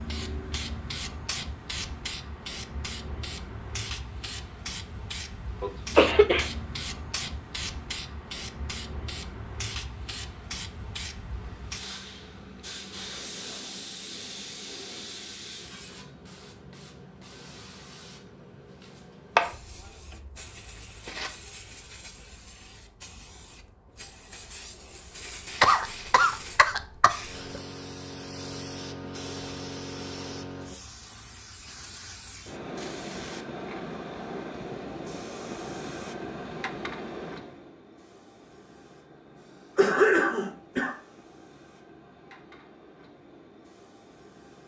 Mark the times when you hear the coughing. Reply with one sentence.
You can hear the coughing from 5.6 to 6.5 s, from 25.6 to 27.6 s and from 39.8 to 41.0 s.